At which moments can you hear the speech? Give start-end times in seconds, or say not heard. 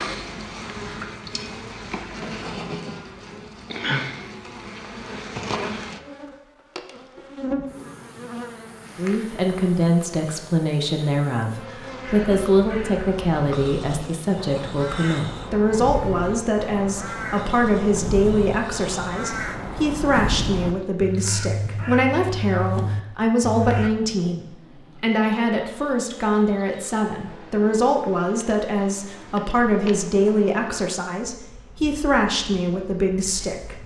8.9-33.8.